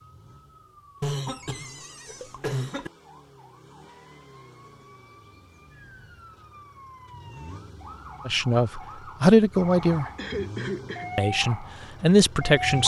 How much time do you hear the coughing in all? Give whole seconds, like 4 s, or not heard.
3 s.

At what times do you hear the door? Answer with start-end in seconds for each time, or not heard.
1.2-2.4.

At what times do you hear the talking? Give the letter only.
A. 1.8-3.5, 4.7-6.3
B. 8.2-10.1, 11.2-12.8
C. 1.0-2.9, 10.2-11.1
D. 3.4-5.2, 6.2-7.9
B.